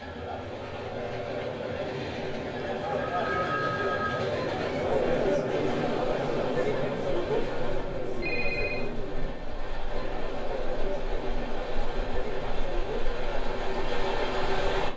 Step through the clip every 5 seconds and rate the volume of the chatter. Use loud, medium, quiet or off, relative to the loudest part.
loud, loud, medium.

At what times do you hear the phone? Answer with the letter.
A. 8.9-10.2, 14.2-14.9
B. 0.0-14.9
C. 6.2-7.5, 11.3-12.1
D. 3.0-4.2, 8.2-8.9
D.